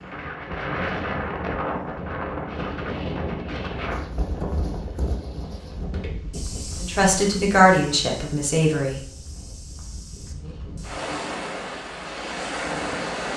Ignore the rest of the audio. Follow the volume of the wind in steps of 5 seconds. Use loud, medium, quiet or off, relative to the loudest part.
loud, medium, loud.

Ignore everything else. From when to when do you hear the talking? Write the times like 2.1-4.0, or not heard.
6.8-9.0.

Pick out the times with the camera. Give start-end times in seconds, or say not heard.
not heard.